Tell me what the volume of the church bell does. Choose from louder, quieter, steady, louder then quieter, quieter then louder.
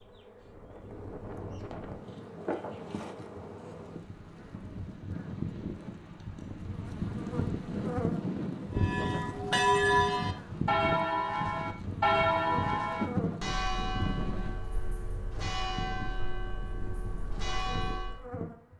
quieter.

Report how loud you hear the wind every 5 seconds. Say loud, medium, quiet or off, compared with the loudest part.
medium, loud, loud, off.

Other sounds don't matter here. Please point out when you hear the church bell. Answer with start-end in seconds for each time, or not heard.
8.8-18.2.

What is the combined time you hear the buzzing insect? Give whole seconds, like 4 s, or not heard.
19 s.